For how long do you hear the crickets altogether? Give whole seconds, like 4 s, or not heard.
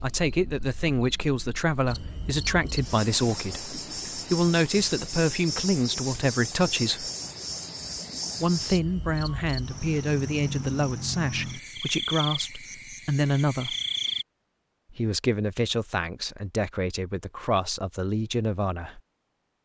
14 s.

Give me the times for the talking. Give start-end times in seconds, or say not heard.
0.0-7.1, 8.4-13.8, 14.9-19.0.